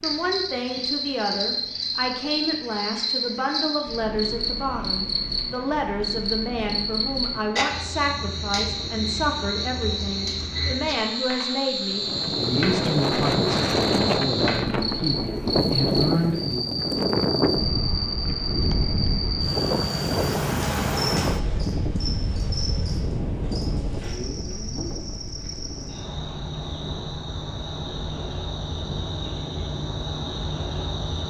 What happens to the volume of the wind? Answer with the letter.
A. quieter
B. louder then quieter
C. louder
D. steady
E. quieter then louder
A.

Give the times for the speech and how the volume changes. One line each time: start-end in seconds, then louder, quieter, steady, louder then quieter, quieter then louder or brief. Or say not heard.
0.0-16.6 steady.